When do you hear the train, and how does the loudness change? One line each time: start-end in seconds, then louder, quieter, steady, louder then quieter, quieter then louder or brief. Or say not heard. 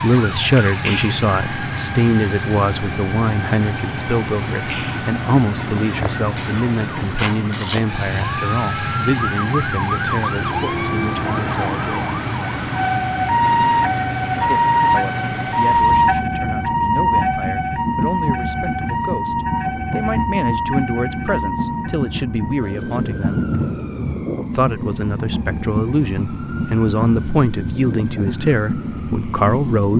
0.0-29.9 steady.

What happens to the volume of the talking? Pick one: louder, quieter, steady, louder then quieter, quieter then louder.
quieter then louder.